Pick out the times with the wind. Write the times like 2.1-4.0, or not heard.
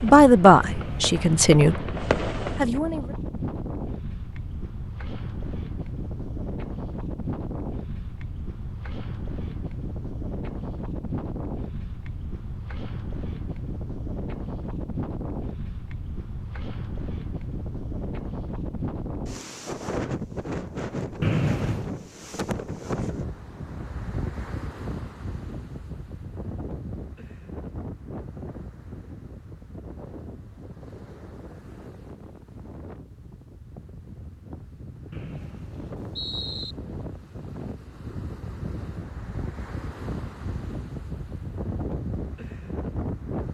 0.0-43.4.